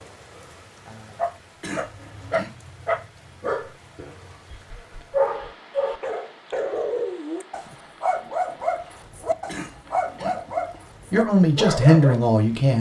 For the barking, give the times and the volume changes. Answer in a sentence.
The barking can be heard from 1.1 to 12.2 s, at a steady volume.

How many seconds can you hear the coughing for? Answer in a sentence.
You can hear the coughing for 2 seconds altogether.